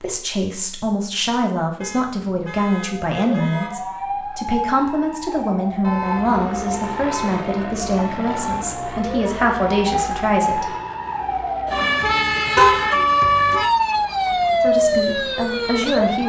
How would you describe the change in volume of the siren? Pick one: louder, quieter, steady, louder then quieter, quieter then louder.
louder.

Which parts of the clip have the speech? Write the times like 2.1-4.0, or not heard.
0.0-10.7, 14.6-16.2.